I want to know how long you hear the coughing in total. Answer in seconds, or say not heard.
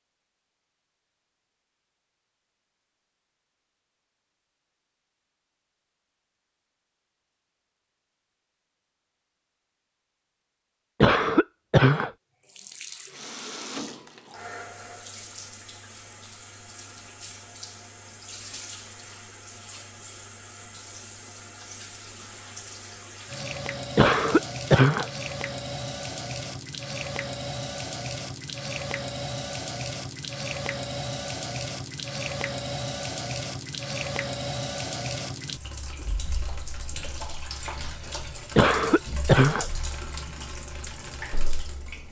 3 s.